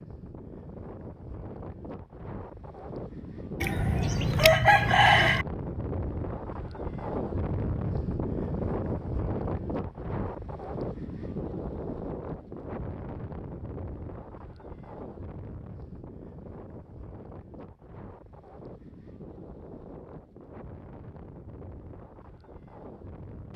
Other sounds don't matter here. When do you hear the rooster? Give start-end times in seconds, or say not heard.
3.6-5.5.